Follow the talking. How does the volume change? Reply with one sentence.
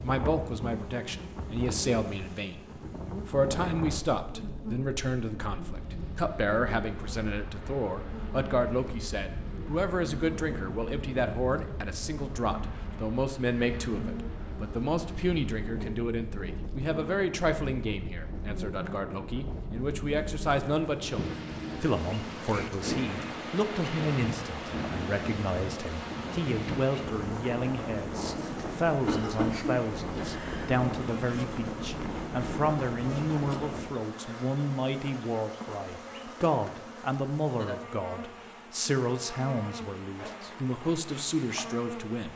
The volume of the talking stays about the same.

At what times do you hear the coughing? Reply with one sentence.
You can hear the coughing from 29.1 to 30.7 s.